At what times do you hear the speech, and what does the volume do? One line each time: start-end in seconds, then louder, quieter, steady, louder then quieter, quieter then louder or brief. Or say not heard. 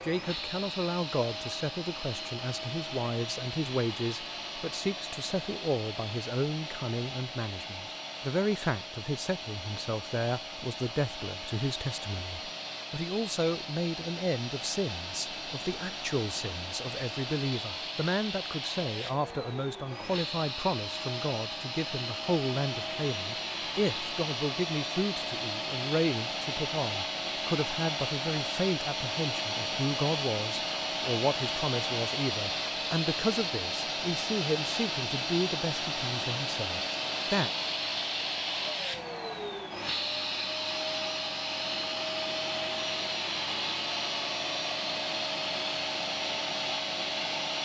0.0-37.5 steady.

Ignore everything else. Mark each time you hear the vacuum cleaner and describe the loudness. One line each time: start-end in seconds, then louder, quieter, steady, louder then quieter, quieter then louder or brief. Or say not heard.
0.0-47.6 louder.